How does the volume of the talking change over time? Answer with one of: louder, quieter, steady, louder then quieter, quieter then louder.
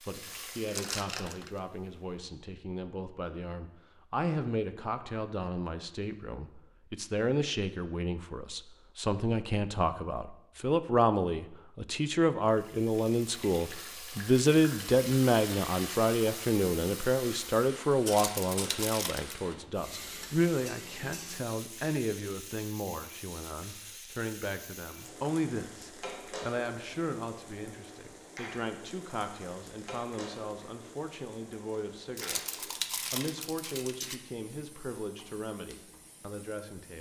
louder then quieter.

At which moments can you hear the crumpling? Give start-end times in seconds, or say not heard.
0.7-1.5, 18.1-19.4, 32.1-34.2.